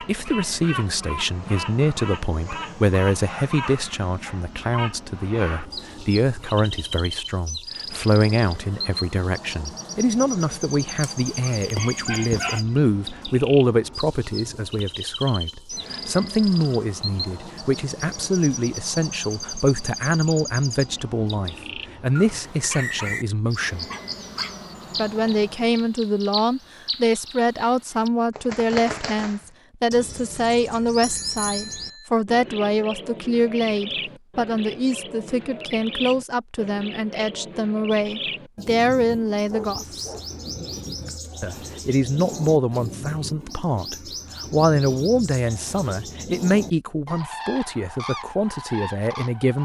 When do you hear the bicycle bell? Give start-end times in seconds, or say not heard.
31.0-32.1.